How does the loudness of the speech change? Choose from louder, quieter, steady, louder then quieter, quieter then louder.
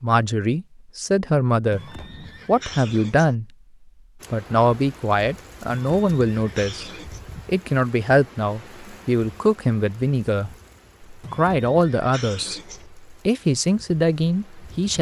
steady.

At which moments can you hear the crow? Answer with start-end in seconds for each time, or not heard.
not heard.